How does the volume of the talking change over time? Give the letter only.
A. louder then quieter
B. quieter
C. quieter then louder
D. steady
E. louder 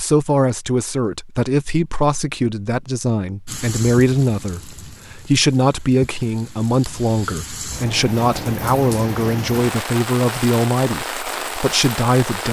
D.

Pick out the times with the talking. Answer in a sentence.
You can hear the talking from 0.0 to 12.4 s.